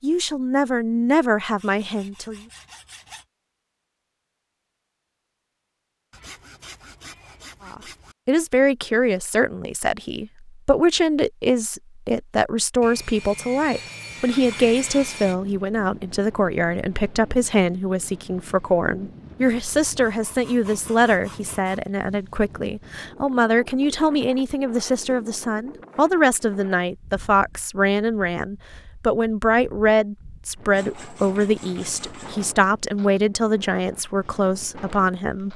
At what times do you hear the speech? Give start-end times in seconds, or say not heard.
0.0-2.4, 7.7-35.5.